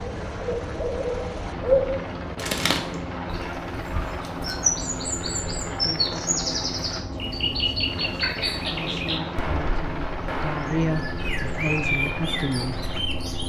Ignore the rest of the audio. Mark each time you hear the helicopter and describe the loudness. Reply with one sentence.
The helicopter can be heard from 0.0 to 13.4 s, at a steady volume.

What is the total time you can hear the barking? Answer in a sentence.
You can't hear the barking here.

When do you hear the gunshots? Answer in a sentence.
The gunshots can be heard from 9.3 to 10.9 s.